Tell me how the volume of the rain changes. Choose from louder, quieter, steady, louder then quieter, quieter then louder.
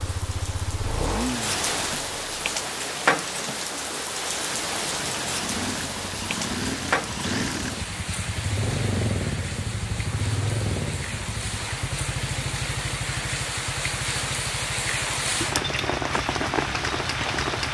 quieter then louder.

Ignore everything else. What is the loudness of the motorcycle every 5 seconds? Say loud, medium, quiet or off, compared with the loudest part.
loud, loud, loud, medium.